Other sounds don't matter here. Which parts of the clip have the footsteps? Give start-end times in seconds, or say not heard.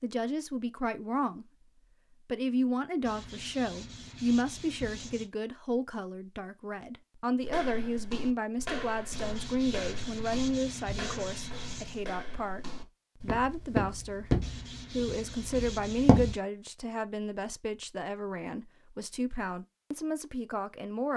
7.5-16.4.